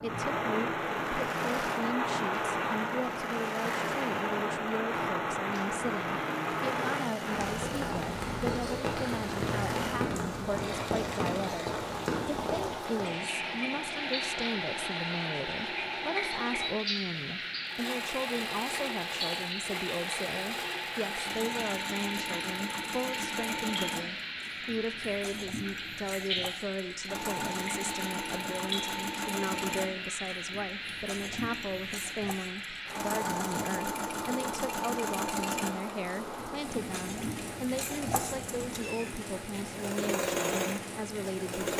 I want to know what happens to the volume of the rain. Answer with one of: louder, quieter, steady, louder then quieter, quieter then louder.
quieter.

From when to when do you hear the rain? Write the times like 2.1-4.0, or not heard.
0.0-41.7.